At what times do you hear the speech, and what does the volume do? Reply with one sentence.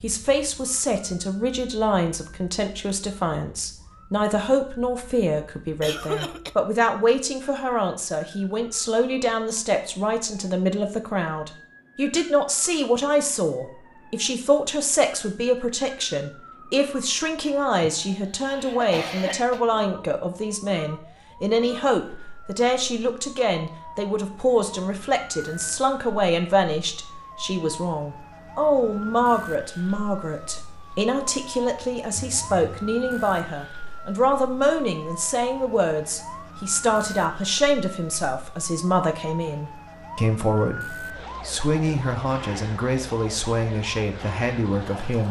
The speech can be heard from 0.0 to 45.2 s, at a steady volume.